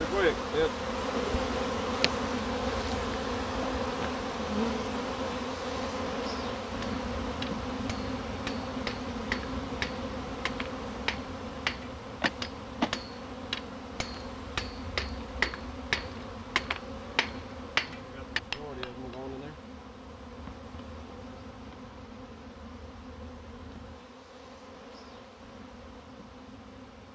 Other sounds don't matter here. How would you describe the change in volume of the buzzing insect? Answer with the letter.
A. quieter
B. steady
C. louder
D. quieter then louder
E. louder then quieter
A.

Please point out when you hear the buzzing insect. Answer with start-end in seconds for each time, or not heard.
0.0-27.1.